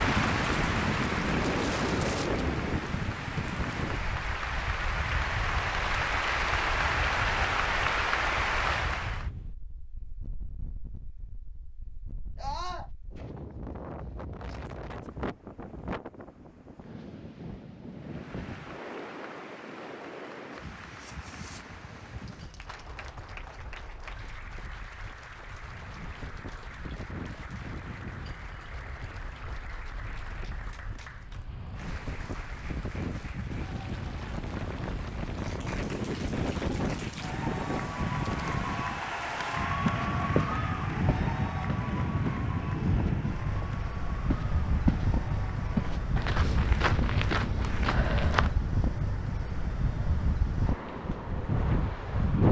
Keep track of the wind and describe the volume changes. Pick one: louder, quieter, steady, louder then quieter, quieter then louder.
quieter then louder.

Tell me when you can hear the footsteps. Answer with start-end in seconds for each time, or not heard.
39.9-45.1, 45.8-48.6.